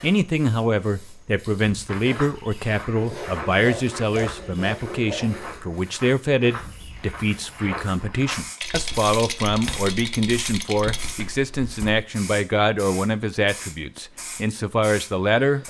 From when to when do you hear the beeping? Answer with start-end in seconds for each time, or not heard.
not heard.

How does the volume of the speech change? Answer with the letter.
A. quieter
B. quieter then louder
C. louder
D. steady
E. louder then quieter
D.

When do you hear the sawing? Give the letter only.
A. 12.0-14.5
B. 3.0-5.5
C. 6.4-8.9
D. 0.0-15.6
B.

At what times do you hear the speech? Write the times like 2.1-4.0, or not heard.
0.0-15.6.